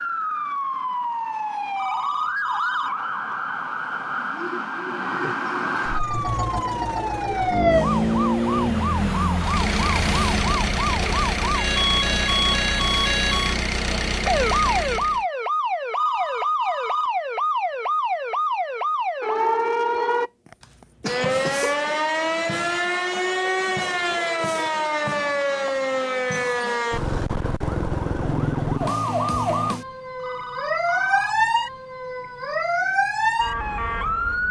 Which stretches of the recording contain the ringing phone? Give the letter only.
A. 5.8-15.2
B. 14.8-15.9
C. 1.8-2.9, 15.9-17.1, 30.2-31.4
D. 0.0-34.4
C.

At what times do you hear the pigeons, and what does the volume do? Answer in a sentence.
The pigeons can't be heard in this clip.